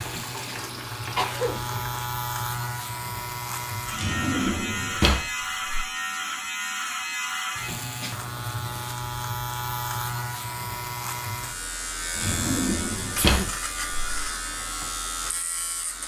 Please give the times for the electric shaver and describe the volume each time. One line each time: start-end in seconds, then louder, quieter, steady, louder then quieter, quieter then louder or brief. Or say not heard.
0.0-16.0 steady.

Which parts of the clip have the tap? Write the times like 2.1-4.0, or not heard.
0.0-2.0.